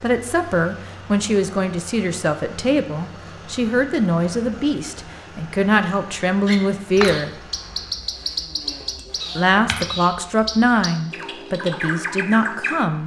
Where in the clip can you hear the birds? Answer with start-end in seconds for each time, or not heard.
6.5-12.8.